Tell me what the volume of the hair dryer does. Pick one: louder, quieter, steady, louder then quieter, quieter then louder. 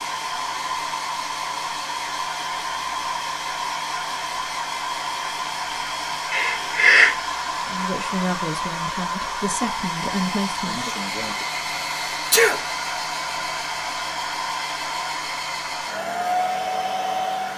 steady.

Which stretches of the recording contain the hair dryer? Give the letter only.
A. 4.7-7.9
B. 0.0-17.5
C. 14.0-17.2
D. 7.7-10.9
B.